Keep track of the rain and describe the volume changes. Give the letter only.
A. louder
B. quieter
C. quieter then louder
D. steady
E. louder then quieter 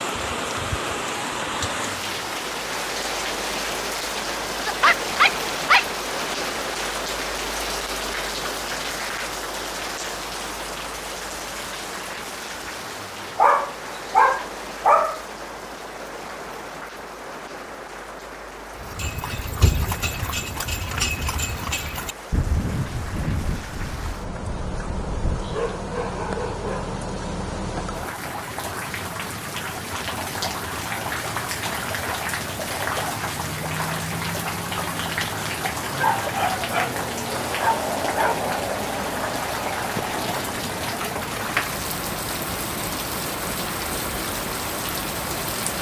C.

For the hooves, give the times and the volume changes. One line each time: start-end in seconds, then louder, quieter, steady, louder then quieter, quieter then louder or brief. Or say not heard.
18.8-25.7 quieter.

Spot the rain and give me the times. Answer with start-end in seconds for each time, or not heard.
0.0-45.7.